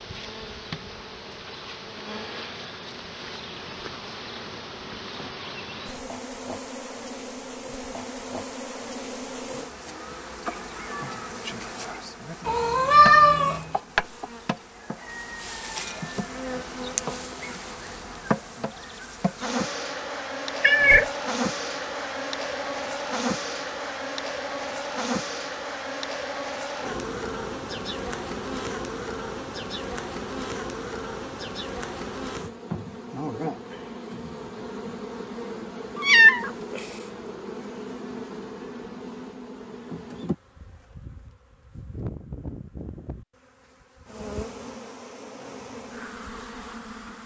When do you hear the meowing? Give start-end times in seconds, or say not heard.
12.4-13.7, 20.6-21.1, 36.0-36.8.